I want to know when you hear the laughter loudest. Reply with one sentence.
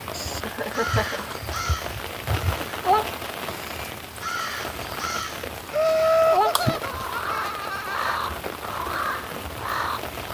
The volume of the laughter peaks at 6 seconds.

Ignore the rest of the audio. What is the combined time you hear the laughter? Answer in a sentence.
The laughter can be heard for 3 seconds in total.